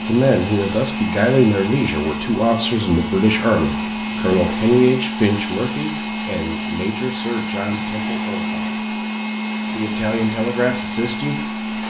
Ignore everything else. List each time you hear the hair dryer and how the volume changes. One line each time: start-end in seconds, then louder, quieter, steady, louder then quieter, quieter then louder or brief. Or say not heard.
0.0-11.8 steady.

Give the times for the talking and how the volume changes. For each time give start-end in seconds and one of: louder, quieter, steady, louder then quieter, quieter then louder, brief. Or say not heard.
0.0-8.8 quieter
9.7-11.8 brief.